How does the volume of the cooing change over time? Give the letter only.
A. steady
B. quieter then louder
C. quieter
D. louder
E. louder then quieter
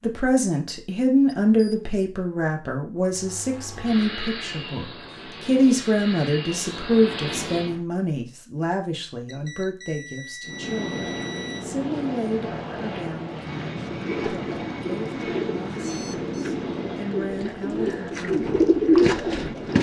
D.